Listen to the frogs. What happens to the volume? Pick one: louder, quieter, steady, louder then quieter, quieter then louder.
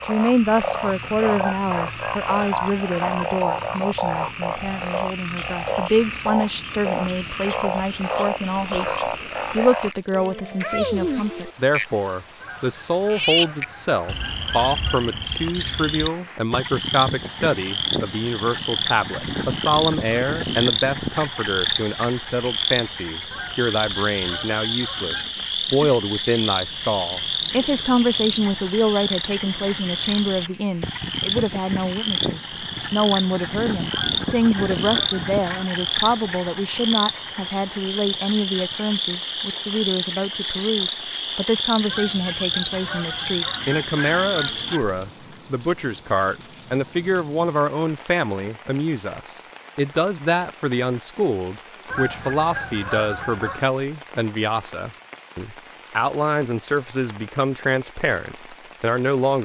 steady.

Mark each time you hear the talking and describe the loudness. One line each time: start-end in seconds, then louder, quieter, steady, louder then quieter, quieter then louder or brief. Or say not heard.
0.0-59.4 steady.